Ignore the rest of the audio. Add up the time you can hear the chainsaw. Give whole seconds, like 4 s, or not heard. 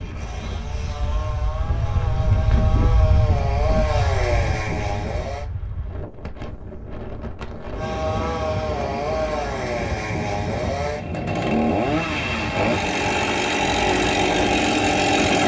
13 s.